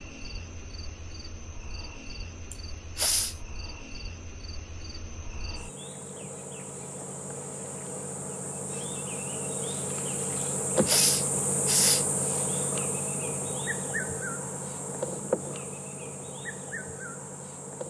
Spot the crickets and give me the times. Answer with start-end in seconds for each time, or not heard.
0.0-17.8.